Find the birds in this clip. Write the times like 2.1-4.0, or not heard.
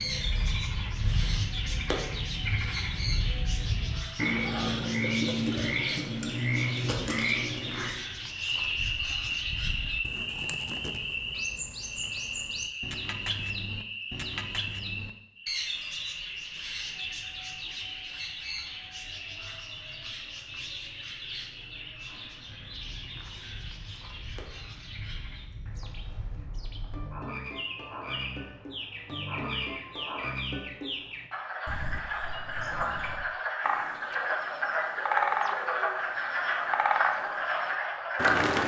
0.0-38.6.